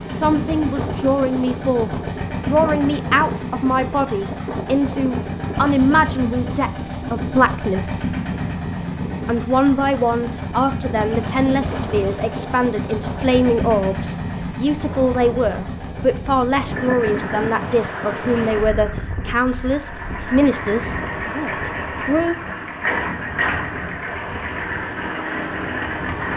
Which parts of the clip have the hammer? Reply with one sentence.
You can't hear the hammer here.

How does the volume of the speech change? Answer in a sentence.
The loudness of the speech stays about the same.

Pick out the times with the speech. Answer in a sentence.
You can hear the speech from 0.0 to 8.1 s and from 9.2 to 22.4 s.